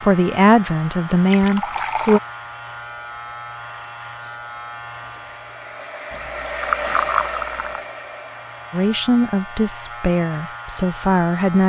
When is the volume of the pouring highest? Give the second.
7 s.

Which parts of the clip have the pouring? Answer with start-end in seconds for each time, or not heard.
1.2-2.2, 6.1-7.8.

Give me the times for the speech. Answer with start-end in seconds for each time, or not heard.
0.0-2.2, 8.7-11.6.